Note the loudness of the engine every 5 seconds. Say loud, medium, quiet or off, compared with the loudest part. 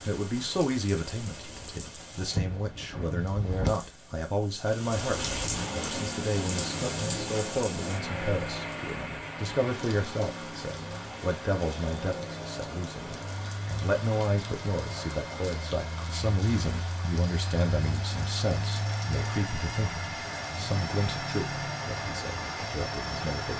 off, loud, medium, loud, loud.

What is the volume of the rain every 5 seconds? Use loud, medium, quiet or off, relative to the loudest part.
loud, loud, medium, medium, medium.